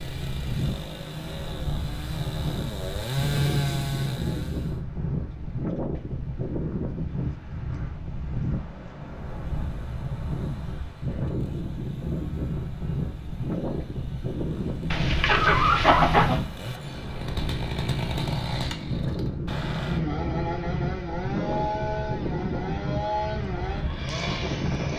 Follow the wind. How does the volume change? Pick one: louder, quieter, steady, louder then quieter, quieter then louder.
steady.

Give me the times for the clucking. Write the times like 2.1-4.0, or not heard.
14.9-16.4.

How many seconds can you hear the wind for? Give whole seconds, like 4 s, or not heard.
25 s.